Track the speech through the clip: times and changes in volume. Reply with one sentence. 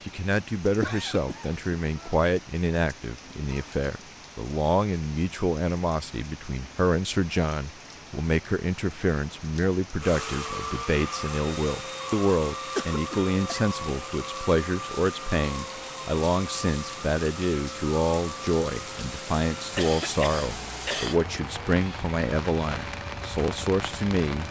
The speech can be heard from 0.0 to 24.4 s, at a steady volume.